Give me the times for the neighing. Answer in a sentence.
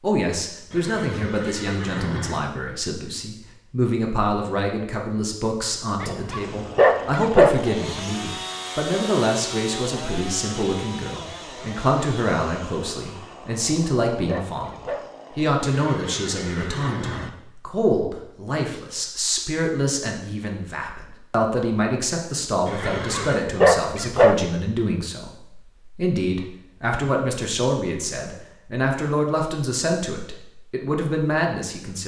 The neighing can be heard from 0.7 to 2.4 s, from 15.6 to 17.3 s and from 22.6 to 23.4 s.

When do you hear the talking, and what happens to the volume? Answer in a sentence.
You can hear the talking from 0.0 to 32.0 s, at a steady volume.